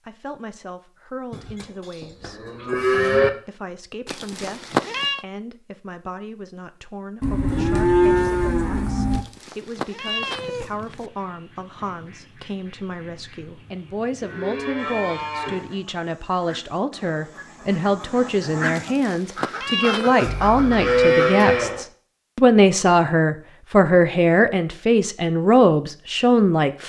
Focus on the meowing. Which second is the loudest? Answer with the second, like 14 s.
5 s.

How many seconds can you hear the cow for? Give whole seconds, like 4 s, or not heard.
7 s.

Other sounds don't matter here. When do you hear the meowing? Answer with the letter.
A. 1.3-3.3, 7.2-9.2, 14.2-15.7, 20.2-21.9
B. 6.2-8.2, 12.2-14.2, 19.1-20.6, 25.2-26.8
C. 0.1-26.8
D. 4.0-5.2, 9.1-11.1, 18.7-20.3
D.